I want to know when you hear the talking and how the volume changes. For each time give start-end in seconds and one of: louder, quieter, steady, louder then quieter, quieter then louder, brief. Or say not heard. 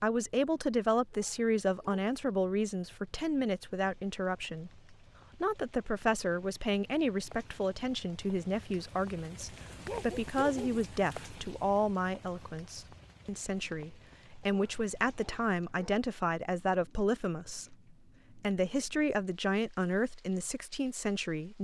0.0-21.6 steady.